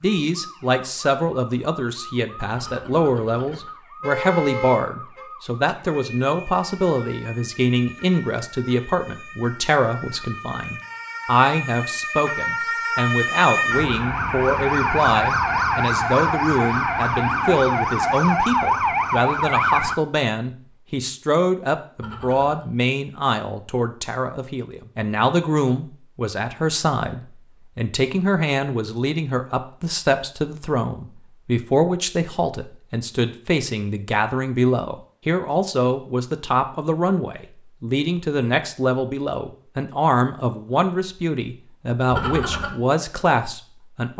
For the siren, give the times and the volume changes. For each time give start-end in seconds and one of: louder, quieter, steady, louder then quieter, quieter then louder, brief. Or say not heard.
0.0-19.9 louder.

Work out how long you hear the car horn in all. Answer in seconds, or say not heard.
4 s.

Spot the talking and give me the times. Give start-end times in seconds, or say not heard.
0.0-44.1.